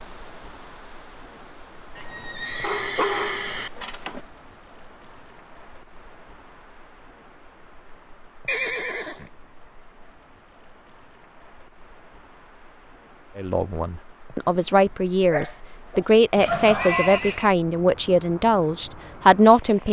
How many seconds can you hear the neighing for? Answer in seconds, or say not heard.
4 s.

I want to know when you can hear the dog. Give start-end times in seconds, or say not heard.
2.6-4.2, 15.3-17.2.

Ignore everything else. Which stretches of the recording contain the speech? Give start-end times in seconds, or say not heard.
13.3-19.8.